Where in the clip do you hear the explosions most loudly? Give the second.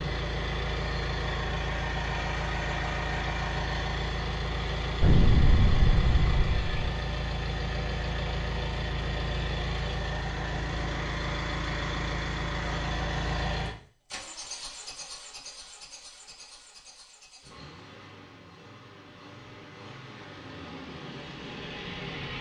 5 s.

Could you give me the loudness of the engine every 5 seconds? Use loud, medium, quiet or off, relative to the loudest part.
loud, loud, loud, quiet, medium.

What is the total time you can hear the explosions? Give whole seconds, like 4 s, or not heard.
2 s.